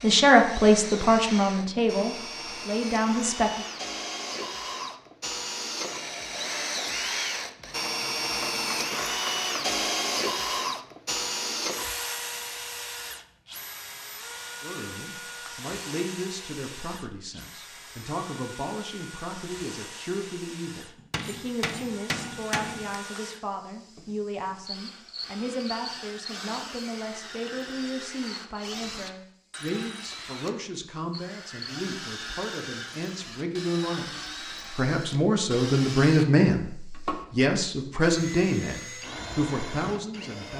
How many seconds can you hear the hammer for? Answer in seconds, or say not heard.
3 s.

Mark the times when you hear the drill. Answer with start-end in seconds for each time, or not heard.
0.0-40.5.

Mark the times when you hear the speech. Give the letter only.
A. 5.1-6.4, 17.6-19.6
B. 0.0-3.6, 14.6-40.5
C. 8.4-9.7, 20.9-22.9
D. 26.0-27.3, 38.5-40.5
B.